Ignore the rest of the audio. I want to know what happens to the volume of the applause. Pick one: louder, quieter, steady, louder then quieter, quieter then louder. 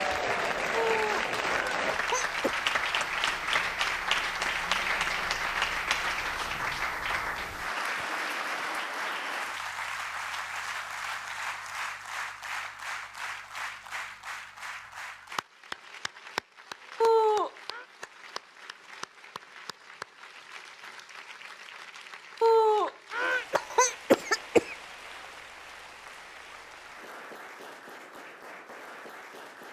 quieter.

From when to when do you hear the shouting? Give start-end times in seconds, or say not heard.
not heard.